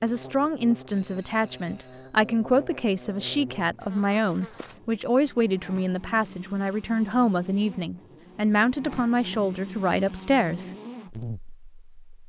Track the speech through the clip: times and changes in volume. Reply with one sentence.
You can hear the speech from 0.0 to 10.7 s, at a steady volume.